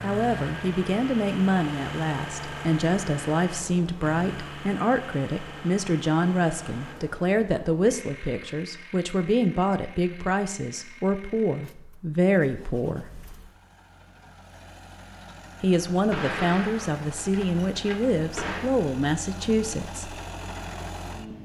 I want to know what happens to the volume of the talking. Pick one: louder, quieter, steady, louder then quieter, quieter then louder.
steady.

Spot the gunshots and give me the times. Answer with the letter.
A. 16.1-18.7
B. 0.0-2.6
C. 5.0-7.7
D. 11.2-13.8
A.